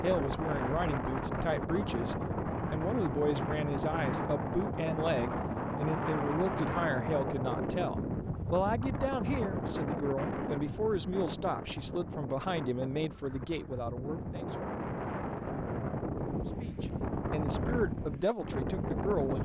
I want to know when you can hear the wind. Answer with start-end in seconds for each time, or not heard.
0.0-19.4.